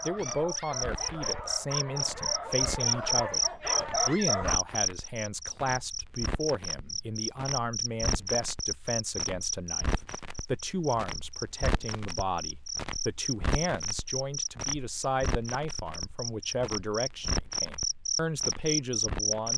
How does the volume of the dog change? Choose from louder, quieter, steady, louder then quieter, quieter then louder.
louder.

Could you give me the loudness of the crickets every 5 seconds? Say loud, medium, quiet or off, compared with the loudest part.
loud, medium, medium, loud.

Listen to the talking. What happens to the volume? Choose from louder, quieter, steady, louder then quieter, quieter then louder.
steady.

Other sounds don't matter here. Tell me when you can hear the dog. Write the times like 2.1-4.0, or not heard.
0.0-4.6.